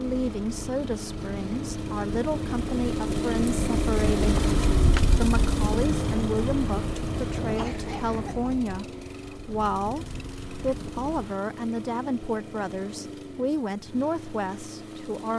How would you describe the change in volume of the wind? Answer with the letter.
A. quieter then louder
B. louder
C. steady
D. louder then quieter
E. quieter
D.